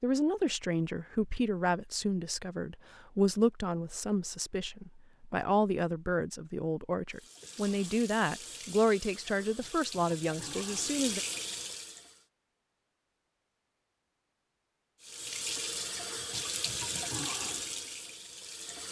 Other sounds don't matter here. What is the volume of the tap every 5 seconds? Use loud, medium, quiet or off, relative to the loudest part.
off, medium, loud, loud.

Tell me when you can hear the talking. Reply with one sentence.
You can hear the talking from 0.0 to 11.2 s.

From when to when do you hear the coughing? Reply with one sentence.
The coughing can't be heard in this clip.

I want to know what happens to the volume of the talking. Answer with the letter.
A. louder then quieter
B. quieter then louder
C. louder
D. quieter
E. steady
E.